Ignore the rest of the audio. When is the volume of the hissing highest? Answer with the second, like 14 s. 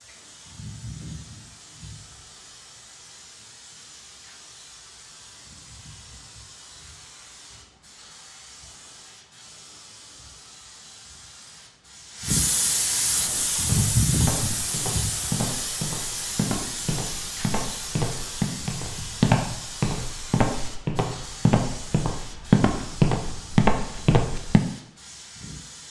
14 s.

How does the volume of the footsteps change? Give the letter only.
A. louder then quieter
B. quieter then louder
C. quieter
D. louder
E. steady
D.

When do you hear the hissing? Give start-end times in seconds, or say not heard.
0.0-25.8.